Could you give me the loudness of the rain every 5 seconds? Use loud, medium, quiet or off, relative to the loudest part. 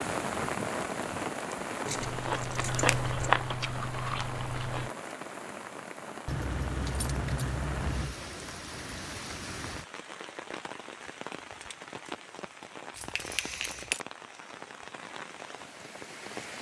loud, medium, medium, medium.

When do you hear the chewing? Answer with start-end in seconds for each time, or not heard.
1.9-4.9.